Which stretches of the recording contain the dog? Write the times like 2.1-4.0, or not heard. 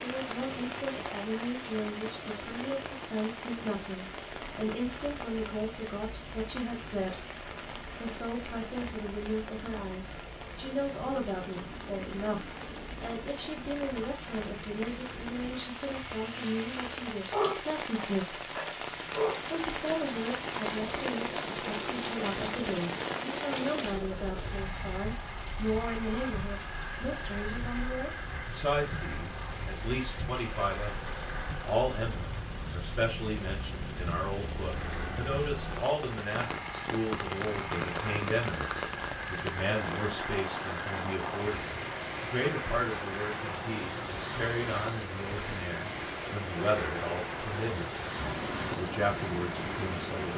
17.3-19.4.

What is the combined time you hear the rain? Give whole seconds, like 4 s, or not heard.
50 s.